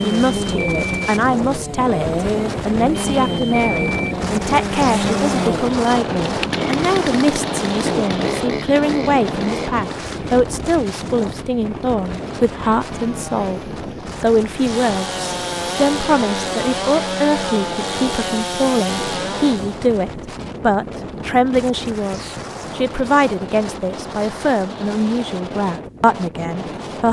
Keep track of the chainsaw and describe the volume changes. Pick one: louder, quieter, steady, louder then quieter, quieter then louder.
quieter then louder.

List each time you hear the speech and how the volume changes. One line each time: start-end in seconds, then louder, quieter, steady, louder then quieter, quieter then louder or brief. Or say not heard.
0.0-27.0 steady.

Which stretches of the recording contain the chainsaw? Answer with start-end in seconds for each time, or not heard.
0.0-19.8.